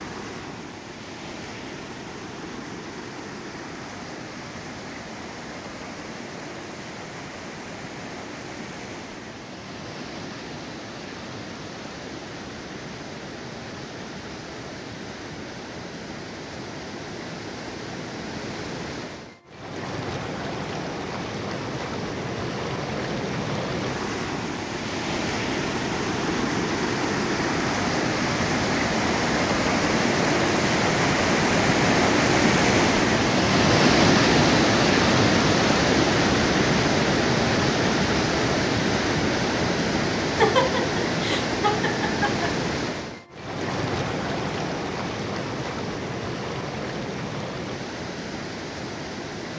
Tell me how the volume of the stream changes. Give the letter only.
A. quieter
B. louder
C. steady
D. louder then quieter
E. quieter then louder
D.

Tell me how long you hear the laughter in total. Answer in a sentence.
The laughter can be heard for 2 seconds in total.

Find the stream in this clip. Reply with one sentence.
You can hear the stream from 0.0 to 49.5 s.